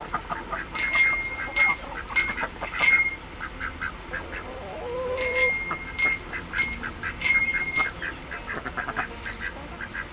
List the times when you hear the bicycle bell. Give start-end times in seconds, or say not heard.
0.8-3.1, 5.2-7.9.